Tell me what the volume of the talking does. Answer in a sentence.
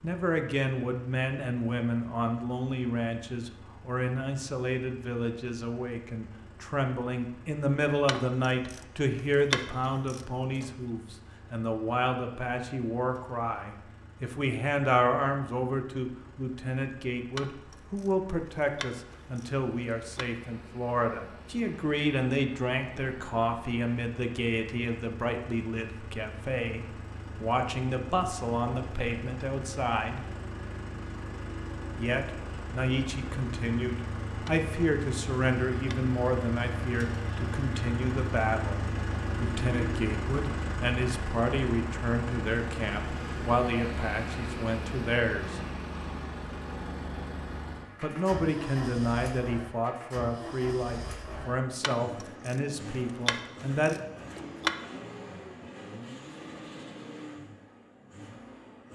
The loudness of the talking stays about the same.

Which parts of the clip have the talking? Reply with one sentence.
You can hear the talking from 0.0 to 30.3 s, from 31.9 to 45.6 s and from 48.0 to 54.0 s.